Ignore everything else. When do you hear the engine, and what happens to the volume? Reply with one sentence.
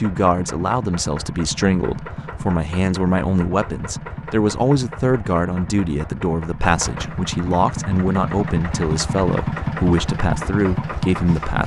You can hear the engine from 0.0 to 11.6 s, getting louder.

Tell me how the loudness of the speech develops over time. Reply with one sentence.
The loudness of the speech stays about the same.